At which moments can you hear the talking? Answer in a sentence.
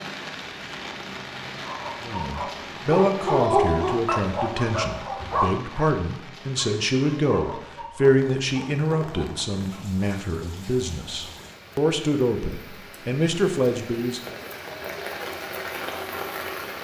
The talking can be heard from 2.0 to 14.4 s.